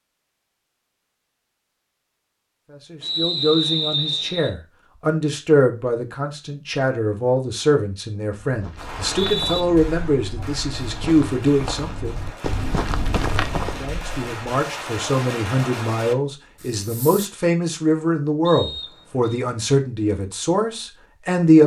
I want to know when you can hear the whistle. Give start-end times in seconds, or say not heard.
3.0-4.5, 8.8-9.6, 18.4-19.4.